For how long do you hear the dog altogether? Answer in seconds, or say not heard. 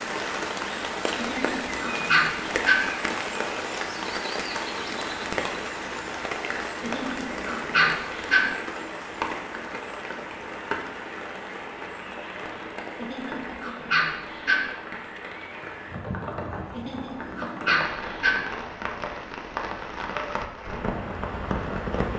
7 s.